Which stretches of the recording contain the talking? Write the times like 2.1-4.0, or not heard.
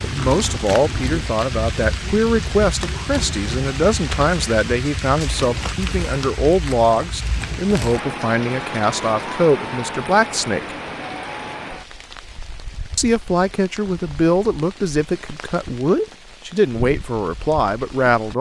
0.0-10.8, 12.9-18.3.